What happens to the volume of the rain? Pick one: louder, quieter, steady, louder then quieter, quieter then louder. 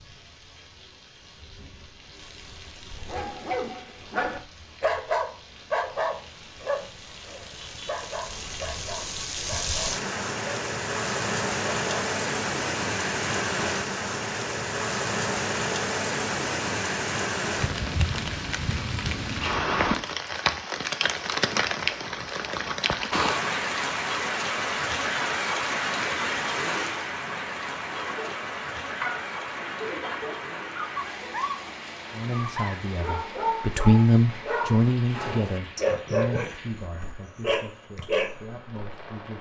louder then quieter.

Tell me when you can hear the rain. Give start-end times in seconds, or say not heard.
0.0-39.3.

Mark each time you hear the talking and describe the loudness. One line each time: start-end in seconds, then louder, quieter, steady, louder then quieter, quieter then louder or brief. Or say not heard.
32.1-39.3 louder then quieter.